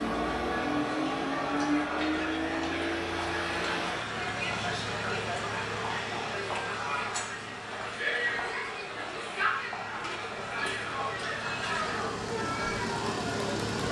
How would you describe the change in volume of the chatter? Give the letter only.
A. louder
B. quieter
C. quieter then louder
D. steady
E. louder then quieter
D.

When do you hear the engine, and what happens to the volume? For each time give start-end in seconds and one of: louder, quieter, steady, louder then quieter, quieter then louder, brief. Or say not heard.
0.0-13.8 quieter then louder.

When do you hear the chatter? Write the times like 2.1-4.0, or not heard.
0.0-13.8.